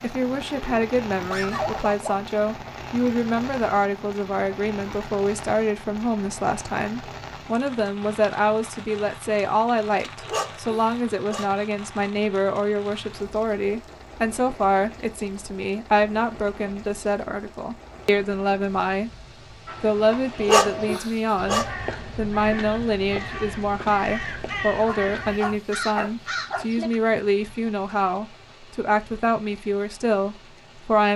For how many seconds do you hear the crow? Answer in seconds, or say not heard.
7 s.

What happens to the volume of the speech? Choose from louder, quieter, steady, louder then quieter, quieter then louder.
steady.